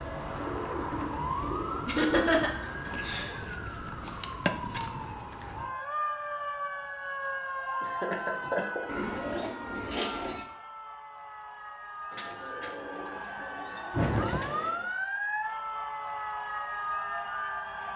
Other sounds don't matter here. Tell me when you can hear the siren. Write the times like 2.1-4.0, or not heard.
0.0-17.9.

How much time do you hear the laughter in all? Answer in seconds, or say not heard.
4 s.